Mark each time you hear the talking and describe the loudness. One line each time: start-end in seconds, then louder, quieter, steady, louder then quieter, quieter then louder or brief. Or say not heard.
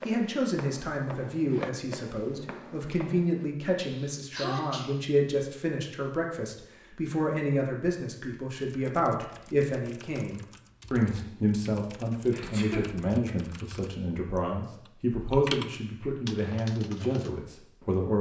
0.0-18.1 steady.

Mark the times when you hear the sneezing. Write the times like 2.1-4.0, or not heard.
3.9-4.9, 12.3-12.9.